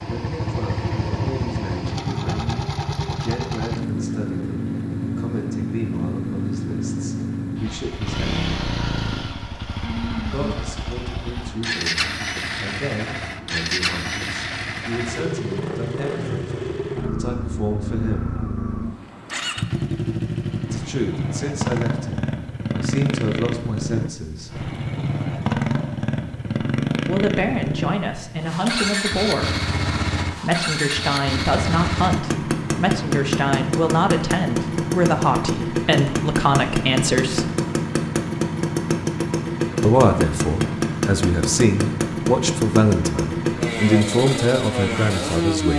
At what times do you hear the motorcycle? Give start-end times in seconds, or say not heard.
0.0-45.7.